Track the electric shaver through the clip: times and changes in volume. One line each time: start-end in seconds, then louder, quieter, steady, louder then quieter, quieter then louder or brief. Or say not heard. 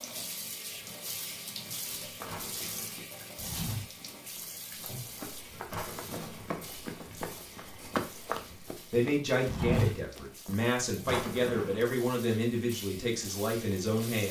not heard.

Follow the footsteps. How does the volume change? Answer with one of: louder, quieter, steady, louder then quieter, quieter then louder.
quieter then louder.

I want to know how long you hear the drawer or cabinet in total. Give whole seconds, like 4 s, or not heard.
2 s.